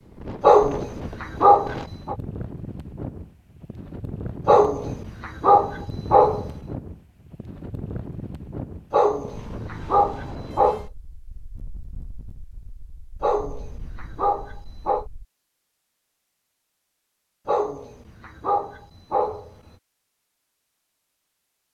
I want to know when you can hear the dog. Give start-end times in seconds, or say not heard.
0.4-2.1, 4.5-6.5, 8.9-10.8, 13.2-15.1, 17.4-19.5.